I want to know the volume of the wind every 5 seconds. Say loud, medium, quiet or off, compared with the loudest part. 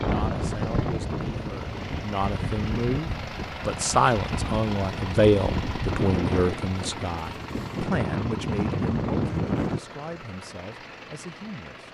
loud, loud, off.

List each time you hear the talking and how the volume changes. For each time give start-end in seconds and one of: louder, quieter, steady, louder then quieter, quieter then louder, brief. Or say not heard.
0.0-11.9 louder then quieter.